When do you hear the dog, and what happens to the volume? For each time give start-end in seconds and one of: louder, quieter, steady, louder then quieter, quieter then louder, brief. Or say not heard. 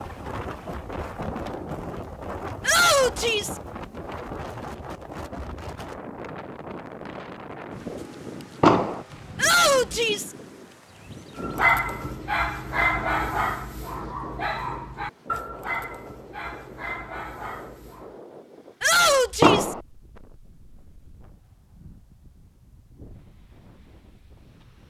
11.4-18.1 quieter.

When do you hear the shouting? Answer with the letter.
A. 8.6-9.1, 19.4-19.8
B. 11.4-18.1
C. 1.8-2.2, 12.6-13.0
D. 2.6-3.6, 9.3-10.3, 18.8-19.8
D.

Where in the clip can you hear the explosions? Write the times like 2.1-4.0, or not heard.
8.6-9.1, 19.4-19.8.